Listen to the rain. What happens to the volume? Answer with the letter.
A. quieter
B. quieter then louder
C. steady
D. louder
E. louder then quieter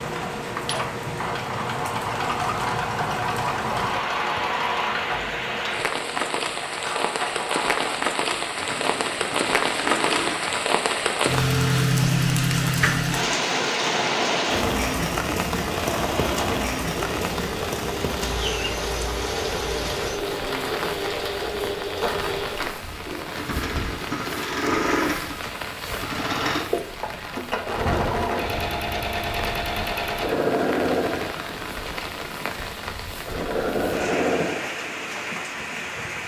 E.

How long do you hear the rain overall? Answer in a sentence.
The rain can be heard for 36 seconds in total.